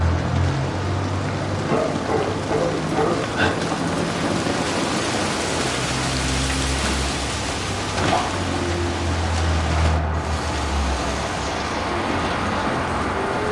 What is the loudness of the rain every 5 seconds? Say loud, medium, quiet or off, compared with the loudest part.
loud, loud, medium.